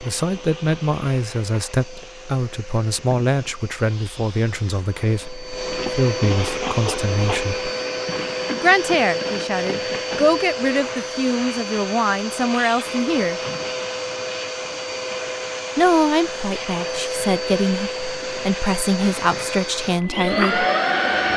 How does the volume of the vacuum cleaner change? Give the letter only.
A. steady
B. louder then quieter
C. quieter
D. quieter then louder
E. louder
E.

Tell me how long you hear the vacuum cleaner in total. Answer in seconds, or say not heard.
21 s.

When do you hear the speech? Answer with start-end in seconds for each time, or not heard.
0.0-7.7, 8.6-13.4, 15.8-20.6.